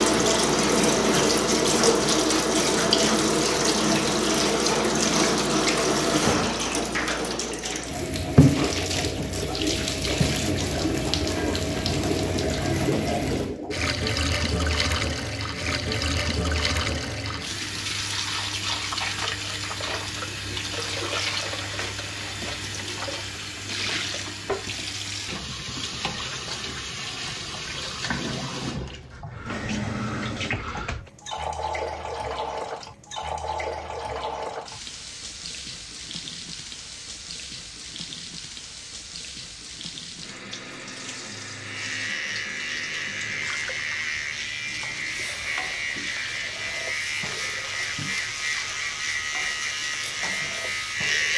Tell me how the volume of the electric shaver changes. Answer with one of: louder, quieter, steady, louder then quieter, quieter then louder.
steady.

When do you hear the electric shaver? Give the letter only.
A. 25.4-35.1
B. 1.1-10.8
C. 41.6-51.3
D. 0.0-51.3
C.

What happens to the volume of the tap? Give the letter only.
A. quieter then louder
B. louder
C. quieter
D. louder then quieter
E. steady
C.